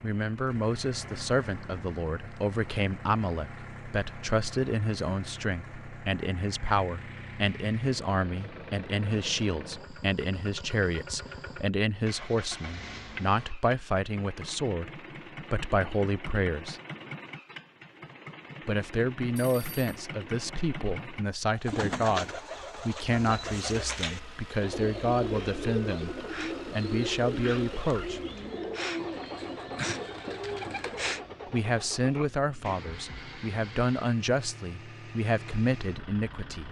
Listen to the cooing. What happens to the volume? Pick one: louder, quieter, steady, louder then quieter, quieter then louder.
steady.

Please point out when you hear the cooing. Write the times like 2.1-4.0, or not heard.
21.5-31.2.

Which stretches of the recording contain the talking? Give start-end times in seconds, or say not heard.
0.0-16.8, 18.6-28.2, 31.5-36.6.